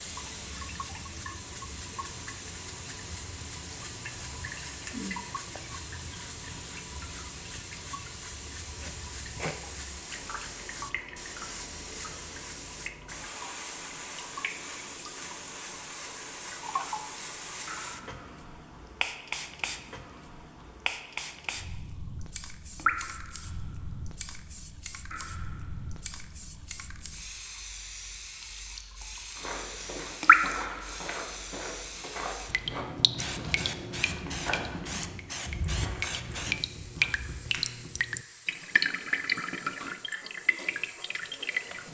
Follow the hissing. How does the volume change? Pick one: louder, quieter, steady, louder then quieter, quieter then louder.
steady.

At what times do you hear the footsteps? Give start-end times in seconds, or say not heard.
29.4-37.6.